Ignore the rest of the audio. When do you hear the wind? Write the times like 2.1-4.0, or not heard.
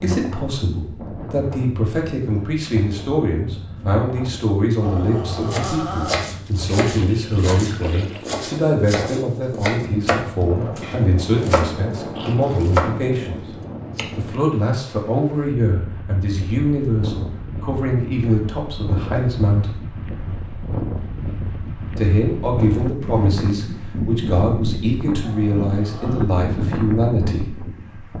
0.0-28.1.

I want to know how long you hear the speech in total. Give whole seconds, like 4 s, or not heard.
25 s.